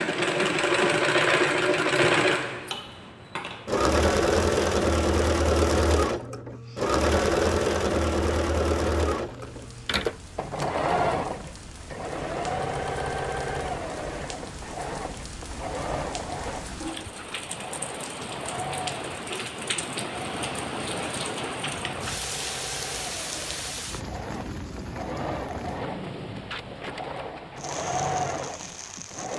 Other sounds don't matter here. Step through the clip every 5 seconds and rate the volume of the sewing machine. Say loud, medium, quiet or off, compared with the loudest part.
loud, loud, medium, quiet, quiet, medium.